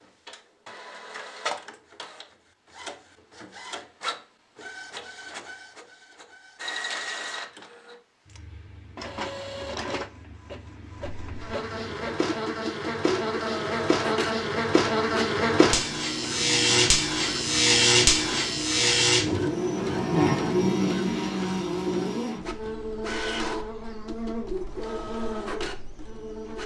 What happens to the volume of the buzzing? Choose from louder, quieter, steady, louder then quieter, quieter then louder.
louder then quieter.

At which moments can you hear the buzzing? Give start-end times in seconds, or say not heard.
11.2-26.6.